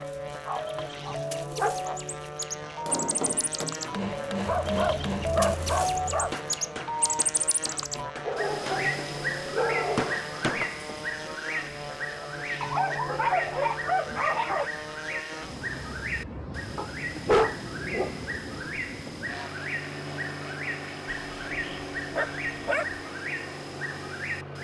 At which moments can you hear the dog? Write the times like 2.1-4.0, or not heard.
0.5-2.0, 4.5-6.3, 8.2-10.2, 12.6-14.7, 16.8-18.3, 21.1-23.0.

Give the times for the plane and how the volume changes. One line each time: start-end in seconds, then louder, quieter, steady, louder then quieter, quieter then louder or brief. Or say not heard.
0.0-24.6 steady.